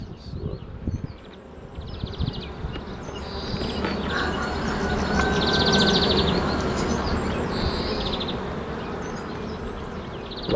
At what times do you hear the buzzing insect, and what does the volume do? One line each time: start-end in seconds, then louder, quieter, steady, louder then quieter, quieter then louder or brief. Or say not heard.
0.0-10.5 louder then quieter.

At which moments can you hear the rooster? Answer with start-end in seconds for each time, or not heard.
4.0-7.0.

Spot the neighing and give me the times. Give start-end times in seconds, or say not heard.
not heard.